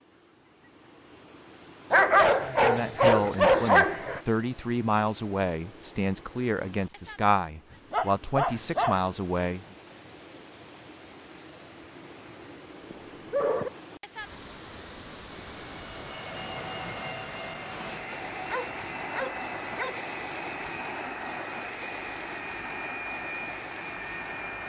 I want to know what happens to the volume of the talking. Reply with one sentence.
The loudness of the talking stays about the same.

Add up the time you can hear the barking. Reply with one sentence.
You can hear the barking for 6 seconds altogether.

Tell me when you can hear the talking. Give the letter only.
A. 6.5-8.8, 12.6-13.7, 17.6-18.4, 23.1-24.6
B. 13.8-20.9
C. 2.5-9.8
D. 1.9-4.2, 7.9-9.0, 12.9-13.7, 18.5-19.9
C.